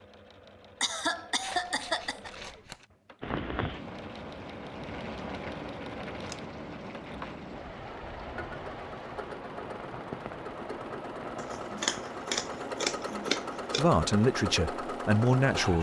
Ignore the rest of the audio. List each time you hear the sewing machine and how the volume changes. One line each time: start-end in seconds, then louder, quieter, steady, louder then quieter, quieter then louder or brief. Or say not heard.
0.0-15.7 louder.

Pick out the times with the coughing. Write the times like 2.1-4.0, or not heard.
0.8-2.3.